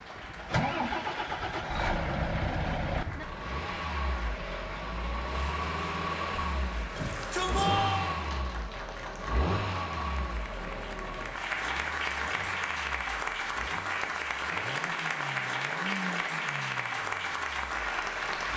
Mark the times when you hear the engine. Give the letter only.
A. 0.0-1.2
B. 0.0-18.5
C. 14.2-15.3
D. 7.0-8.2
B.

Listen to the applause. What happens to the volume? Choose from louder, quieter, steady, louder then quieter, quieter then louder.
louder.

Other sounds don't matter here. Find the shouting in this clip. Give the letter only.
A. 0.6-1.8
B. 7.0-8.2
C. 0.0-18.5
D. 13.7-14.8
B.